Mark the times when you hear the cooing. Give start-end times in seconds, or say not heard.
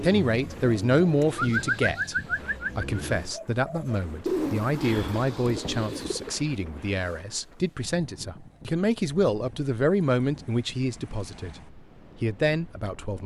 0.3-6.4.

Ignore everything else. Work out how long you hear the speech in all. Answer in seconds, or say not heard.
12 s.